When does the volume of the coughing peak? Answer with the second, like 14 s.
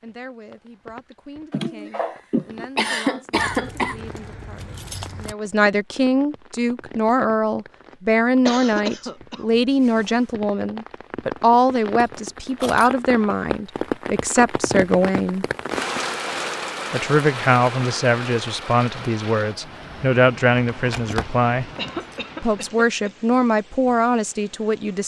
3 s.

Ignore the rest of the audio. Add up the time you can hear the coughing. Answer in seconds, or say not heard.
6 s.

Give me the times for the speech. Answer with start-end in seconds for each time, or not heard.
0.0-15.4, 16.9-21.7, 22.4-25.0.